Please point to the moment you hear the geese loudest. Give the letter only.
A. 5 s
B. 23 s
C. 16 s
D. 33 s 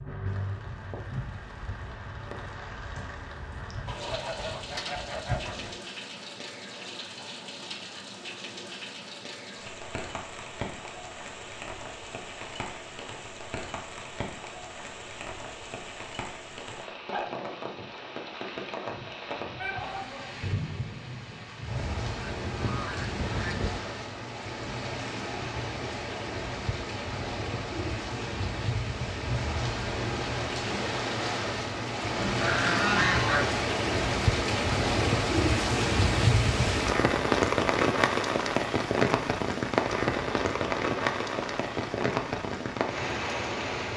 D.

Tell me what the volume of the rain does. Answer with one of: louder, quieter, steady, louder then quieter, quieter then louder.
louder.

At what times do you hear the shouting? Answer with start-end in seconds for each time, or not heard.
19.6-20.3.